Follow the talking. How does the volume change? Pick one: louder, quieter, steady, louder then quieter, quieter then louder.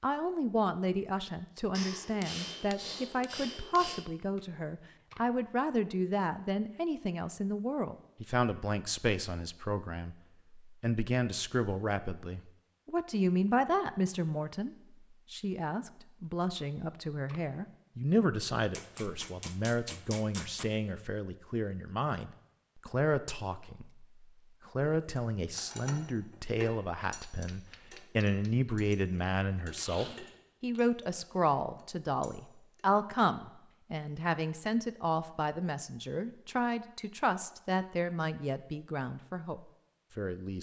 steady.